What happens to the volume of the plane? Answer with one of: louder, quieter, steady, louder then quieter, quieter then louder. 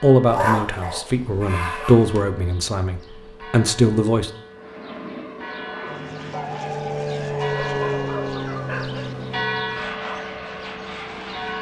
louder then quieter.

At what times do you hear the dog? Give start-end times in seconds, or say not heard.
0.2-2.2, 6.3-9.1.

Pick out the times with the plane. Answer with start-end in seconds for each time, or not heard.
4.5-11.5.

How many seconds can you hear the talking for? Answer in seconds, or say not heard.
4 s.